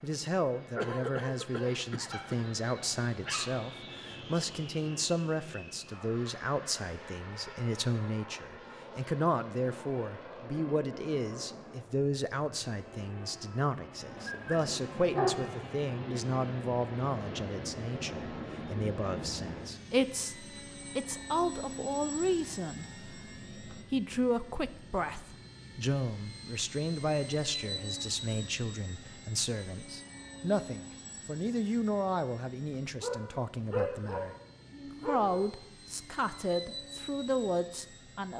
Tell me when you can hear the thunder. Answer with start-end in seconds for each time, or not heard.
not heard.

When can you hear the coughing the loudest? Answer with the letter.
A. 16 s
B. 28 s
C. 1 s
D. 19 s
C.